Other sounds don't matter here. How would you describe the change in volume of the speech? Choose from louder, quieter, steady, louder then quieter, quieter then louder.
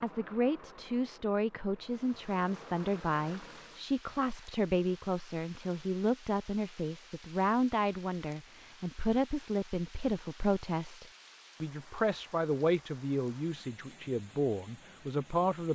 steady.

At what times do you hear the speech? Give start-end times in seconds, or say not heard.
0.0-15.6.